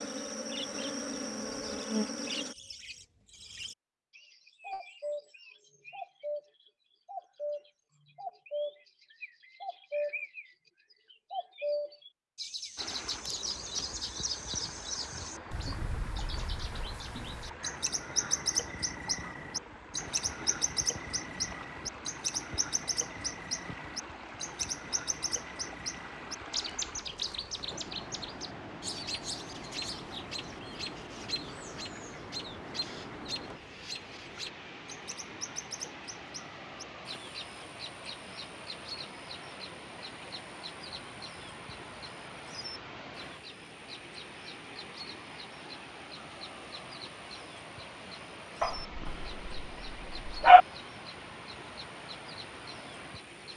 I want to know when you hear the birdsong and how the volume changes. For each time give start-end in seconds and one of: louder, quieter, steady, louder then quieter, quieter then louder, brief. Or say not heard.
0.0-10.5 louder
11.1-53.5 quieter.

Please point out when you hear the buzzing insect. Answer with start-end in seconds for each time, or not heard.
0.0-2.5.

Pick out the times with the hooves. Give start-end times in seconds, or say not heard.
not heard.